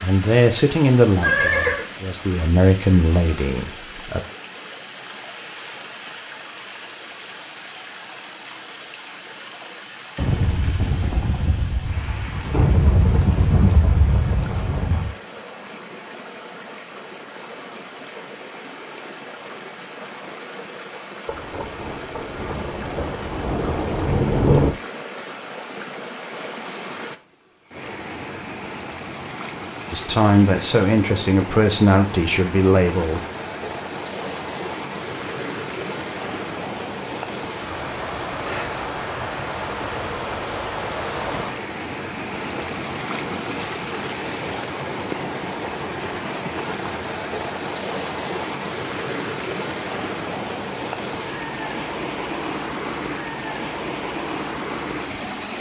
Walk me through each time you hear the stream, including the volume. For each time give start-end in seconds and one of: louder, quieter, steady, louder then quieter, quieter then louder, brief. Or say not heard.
0.0-55.5 louder.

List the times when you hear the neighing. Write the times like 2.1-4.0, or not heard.
1.2-1.9.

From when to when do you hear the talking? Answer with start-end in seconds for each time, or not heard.
0.0-4.2, 29.9-33.2.